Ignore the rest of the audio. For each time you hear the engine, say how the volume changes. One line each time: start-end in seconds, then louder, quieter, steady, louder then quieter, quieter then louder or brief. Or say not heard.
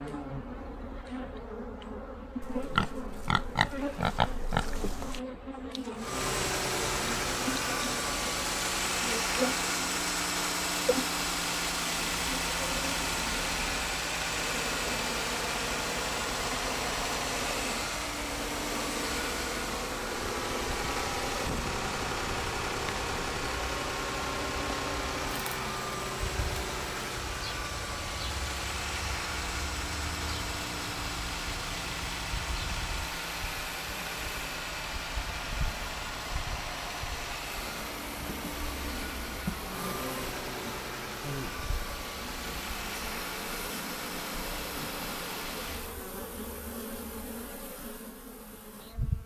6.0-46.0 quieter.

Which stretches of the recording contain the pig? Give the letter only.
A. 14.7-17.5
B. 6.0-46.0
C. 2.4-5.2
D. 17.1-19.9
C.